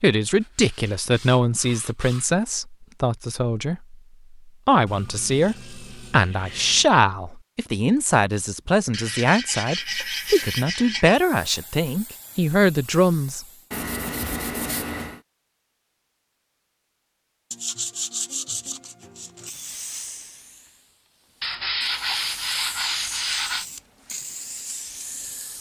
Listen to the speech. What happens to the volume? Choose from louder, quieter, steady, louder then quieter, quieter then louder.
steady.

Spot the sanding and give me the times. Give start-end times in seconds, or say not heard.
0.4-2.4, 4.8-6.9, 8.9-11.2, 13.7-15.2, 17.5-19.5, 21.4-23.6.